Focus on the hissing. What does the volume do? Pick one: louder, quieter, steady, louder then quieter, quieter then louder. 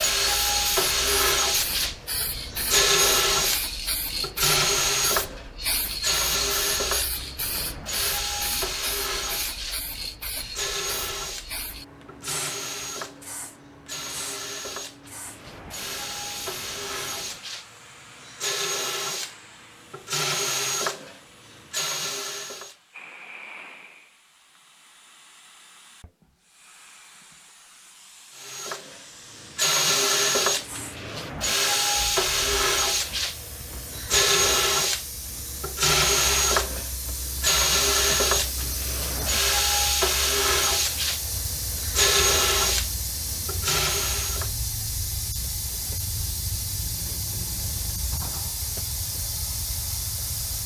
quieter then louder.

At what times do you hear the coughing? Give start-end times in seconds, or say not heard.
not heard.